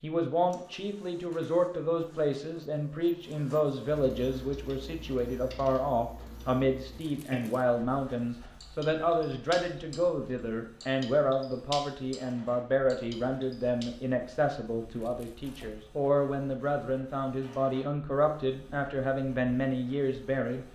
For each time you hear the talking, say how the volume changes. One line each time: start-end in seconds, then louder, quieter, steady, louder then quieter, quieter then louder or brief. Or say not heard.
0.0-20.6 steady.